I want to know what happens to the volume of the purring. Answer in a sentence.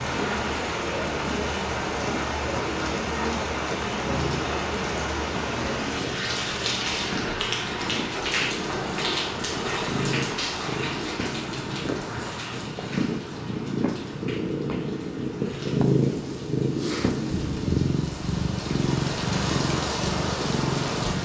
The loudness of the purring goes up.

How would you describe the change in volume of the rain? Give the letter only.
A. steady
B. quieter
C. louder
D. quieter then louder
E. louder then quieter
D.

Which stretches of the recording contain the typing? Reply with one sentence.
You can't hear the typing here.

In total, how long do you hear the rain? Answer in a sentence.
The rain can be heard for 21 seconds in total.